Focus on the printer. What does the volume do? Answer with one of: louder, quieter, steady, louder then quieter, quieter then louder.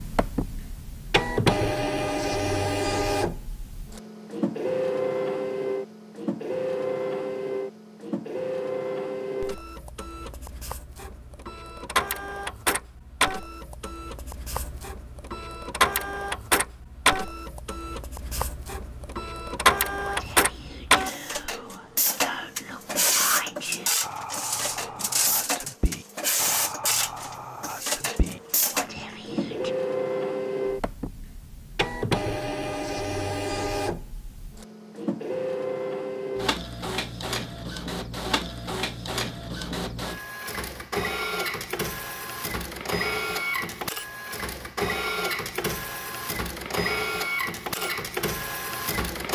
steady.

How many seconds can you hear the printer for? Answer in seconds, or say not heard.
49 s.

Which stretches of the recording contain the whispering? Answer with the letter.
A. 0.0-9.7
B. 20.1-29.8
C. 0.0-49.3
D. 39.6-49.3
B.